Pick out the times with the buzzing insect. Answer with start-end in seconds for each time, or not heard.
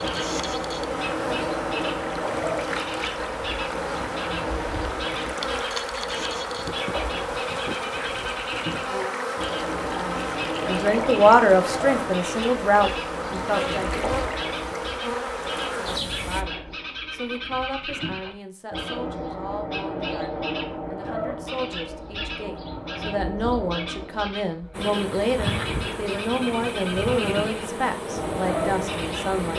0.0-16.4, 24.7-29.5.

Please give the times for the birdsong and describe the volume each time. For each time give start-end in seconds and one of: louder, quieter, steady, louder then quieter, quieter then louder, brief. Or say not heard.
0.0-29.5 steady.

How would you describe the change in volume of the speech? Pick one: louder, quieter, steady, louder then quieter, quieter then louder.
quieter then louder.